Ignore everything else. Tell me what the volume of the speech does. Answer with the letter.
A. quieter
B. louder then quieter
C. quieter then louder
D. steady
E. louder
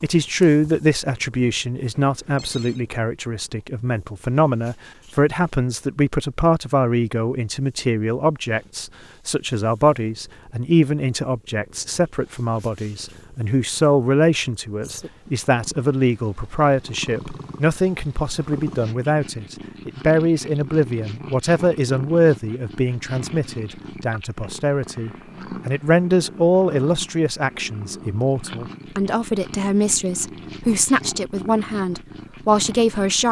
D.